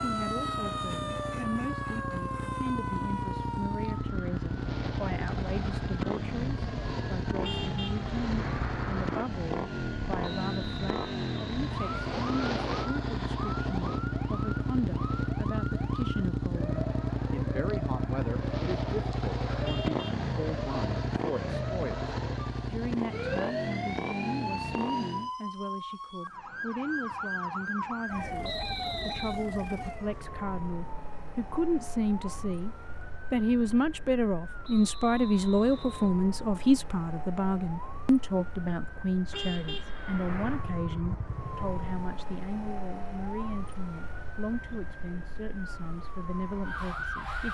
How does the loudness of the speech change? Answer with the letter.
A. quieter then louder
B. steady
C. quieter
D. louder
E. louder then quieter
E.